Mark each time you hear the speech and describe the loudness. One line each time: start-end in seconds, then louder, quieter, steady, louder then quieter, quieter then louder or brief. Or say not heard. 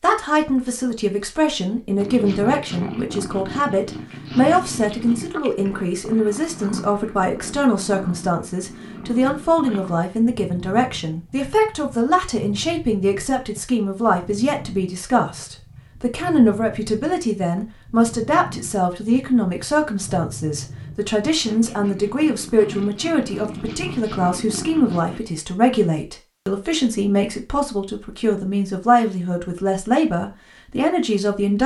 0.0-31.6 steady.